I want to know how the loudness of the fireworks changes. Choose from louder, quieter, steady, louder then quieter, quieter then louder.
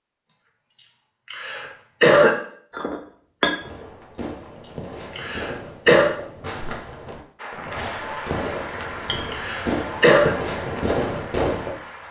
louder.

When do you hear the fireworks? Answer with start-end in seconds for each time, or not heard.
3.5-11.8.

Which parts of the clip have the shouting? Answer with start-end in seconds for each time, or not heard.
not heard.